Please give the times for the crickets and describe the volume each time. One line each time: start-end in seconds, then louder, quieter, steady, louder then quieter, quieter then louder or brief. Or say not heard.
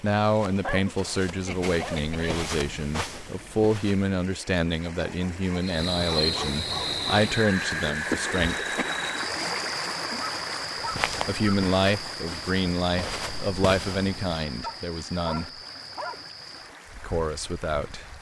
5.6-18.1 quieter.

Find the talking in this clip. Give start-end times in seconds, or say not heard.
0.0-8.8, 11.2-15.5, 17.0-18.1.